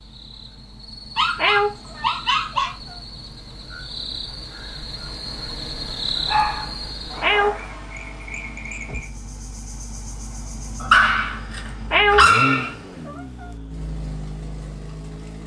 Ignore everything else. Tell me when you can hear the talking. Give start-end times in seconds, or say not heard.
not heard.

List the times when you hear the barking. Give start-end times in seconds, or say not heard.
1.1-2.8, 6.2-7.7, 10.9-12.8.